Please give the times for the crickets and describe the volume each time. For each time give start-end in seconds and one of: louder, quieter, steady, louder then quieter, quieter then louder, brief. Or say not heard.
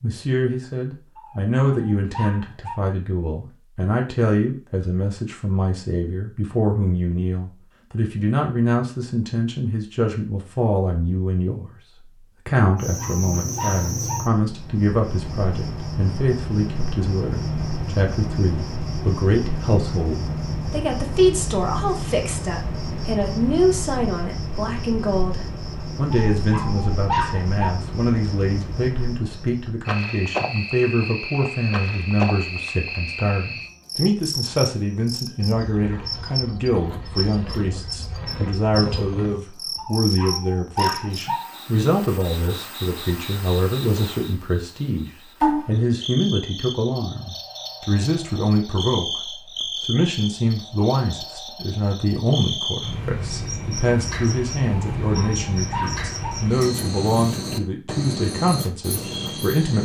12.8-59.8 steady.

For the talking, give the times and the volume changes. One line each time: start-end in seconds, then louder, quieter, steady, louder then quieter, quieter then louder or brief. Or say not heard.
0.0-59.8 steady.